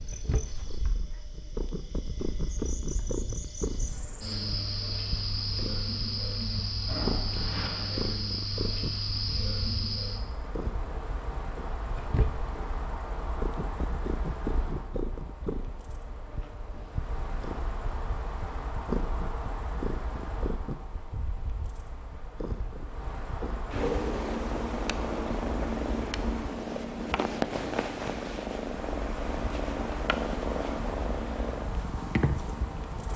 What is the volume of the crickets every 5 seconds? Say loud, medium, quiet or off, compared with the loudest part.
medium, loud, medium, medium, medium, medium, medium.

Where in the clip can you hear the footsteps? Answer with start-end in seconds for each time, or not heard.
not heard.